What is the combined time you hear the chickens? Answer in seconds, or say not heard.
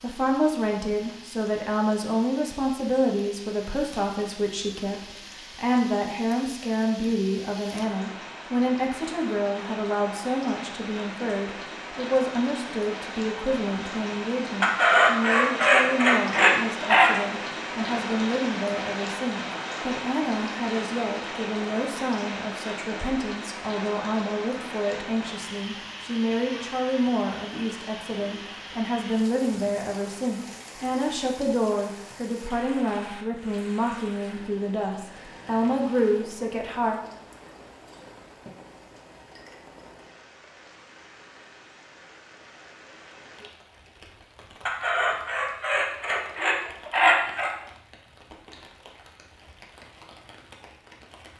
5 s.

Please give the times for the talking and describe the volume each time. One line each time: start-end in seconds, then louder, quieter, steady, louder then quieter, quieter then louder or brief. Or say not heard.
0.0-37.0 steady.